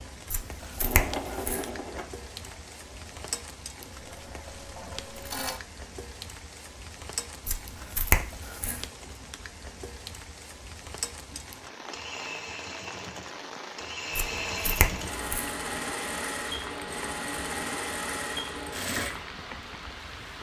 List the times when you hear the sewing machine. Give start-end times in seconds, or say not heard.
0.0-5.6, 11.3-20.3.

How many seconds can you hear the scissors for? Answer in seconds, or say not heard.
4 s.